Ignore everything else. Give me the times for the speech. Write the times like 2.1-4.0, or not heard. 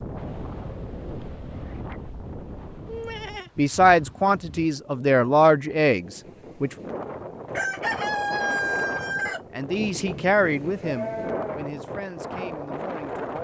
3.5-6.8, 9.5-13.3.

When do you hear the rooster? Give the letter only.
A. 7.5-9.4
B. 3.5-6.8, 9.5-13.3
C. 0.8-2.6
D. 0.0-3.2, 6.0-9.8
A.